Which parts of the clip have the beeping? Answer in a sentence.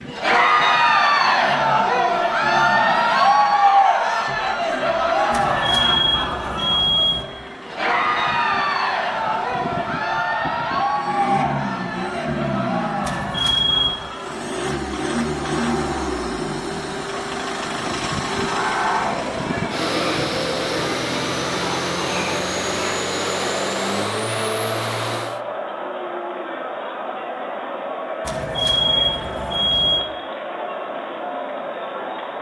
You can hear the beeping from 5.3 to 7.2 s, from 13.0 to 14.0 s and from 28.2 to 30.0 s.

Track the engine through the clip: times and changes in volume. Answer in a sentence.
The engine can be heard from 0.0 to 25.4 s, getting louder.